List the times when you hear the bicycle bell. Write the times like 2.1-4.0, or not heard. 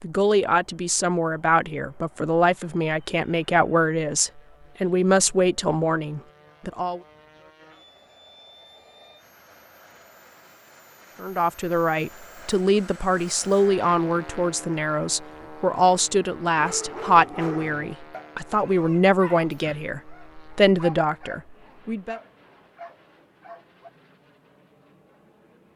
not heard.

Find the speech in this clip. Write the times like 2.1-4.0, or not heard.
0.0-7.0, 11.2-22.2.